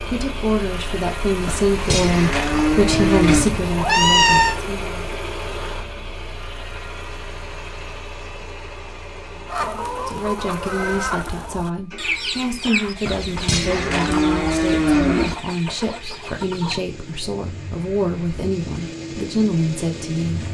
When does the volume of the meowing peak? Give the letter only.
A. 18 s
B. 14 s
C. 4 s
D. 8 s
C.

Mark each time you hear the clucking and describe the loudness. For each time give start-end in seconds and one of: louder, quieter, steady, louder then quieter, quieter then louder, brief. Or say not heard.
9.4-16.9 quieter.